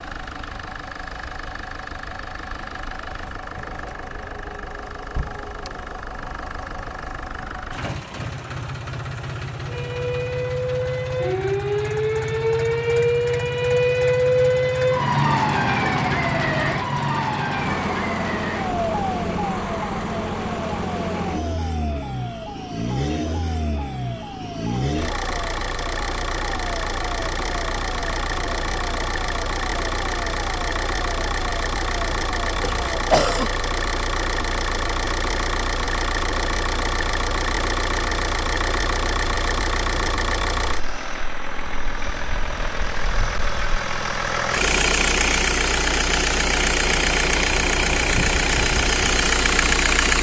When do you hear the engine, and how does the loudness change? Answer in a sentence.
The engine can be heard from 0.0 to 50.1 s, getting louder.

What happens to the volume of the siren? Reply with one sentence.
The loudness of the siren goes down.